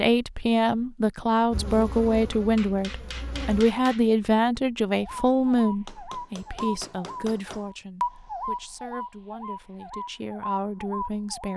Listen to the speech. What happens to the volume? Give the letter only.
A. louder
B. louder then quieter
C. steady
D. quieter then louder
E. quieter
E.